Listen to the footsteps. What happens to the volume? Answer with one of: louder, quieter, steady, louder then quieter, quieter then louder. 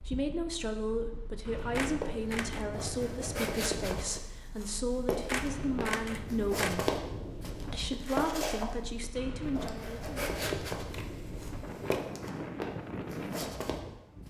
steady.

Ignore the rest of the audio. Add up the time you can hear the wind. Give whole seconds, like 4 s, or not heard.
14 s.